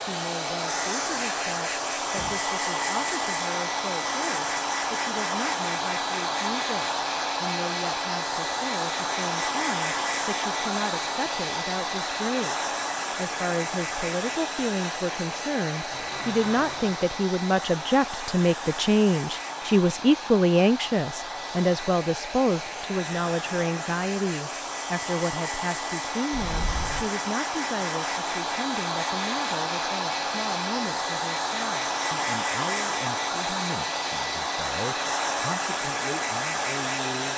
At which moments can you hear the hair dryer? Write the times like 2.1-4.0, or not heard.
0.0-37.3.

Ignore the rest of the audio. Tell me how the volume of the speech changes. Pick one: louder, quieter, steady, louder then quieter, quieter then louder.
louder then quieter.